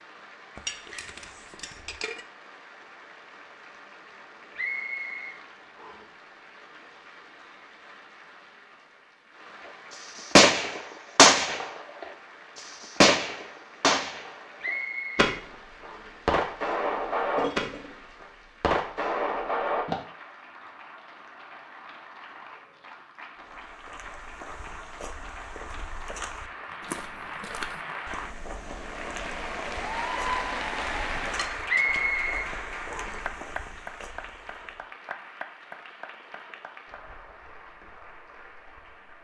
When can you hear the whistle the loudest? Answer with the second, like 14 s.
32 s.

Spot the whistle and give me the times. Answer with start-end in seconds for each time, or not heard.
4.5-6.1, 14.6-16.2, 31.6-33.2.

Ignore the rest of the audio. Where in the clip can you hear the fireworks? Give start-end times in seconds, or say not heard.
10.2-19.9.